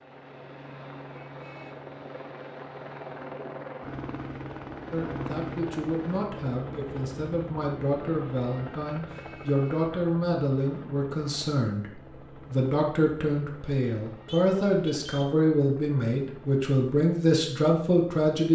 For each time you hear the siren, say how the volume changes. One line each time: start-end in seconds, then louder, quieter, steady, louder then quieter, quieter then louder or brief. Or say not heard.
not heard.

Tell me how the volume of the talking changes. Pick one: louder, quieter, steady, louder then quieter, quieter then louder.
louder.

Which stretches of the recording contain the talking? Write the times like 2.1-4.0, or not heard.
4.9-18.5.